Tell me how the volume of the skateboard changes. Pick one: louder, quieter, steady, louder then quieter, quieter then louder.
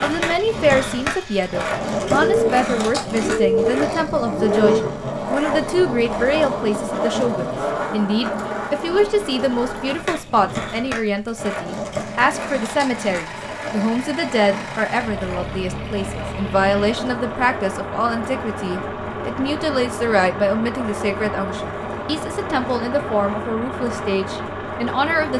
quieter.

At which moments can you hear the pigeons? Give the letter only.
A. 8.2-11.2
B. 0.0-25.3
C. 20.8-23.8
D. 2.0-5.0
D.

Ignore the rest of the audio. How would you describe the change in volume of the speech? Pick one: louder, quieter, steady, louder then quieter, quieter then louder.
steady.